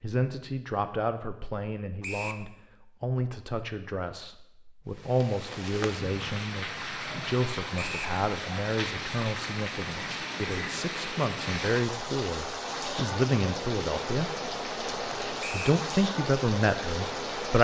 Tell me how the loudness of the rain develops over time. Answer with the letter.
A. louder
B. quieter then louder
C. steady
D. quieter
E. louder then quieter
C.